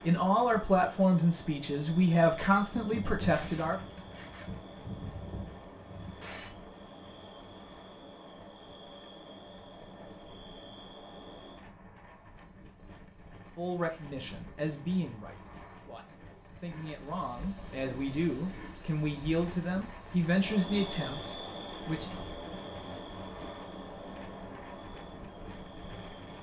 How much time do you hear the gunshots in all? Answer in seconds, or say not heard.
4 s.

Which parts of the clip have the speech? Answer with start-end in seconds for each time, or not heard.
0.0-3.8, 13.6-22.1.